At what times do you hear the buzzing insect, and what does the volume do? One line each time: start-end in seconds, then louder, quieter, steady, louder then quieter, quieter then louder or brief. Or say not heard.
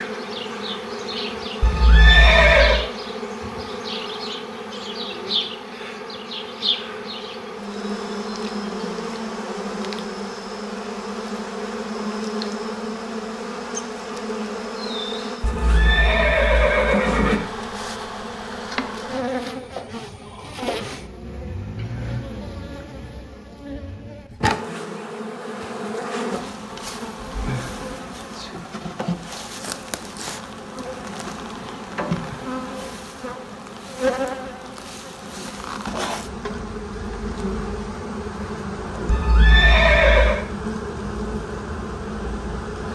0.0-42.8 steady.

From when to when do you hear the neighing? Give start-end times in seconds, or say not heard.
1.6-2.9, 15.4-17.4, 39.0-40.5.